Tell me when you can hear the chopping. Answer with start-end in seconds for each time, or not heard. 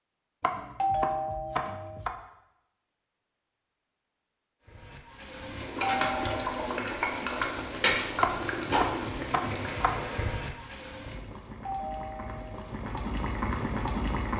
0.4-2.1, 8.2-10.0.